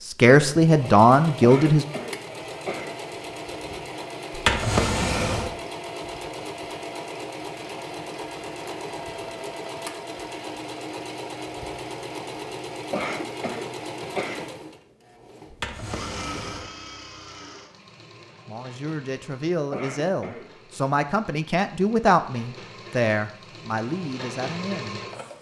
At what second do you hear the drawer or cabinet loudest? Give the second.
5 s.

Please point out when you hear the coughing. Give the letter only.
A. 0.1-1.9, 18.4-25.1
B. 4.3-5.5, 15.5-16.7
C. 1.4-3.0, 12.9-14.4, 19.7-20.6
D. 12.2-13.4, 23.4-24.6
C.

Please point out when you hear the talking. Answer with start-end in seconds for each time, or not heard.
0.1-1.9, 18.4-25.1.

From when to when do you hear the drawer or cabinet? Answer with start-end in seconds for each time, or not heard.
4.3-5.5, 15.5-16.7.